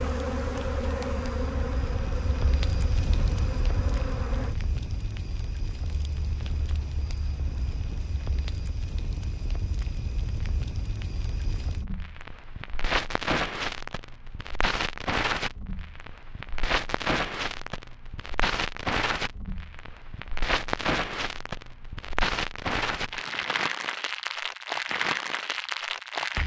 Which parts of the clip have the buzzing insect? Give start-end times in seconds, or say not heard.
0.0-4.5.